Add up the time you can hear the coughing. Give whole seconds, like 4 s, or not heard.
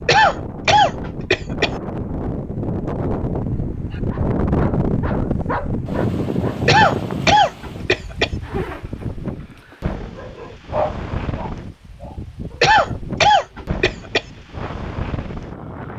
5 s.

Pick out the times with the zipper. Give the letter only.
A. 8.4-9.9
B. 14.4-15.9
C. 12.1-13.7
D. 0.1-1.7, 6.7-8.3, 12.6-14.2
A.